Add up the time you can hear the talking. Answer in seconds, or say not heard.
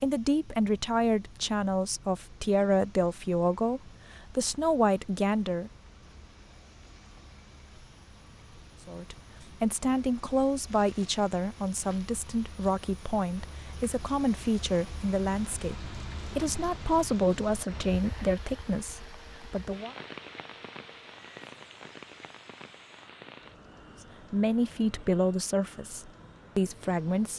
20 s.